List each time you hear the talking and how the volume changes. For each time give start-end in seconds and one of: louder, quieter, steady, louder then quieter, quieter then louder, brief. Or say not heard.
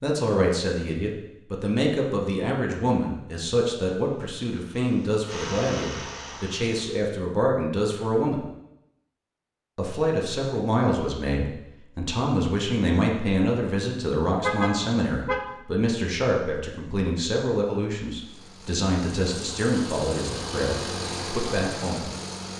0.0-8.4 steady
9.8-22.1 steady.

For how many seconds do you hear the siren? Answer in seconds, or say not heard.
not heard.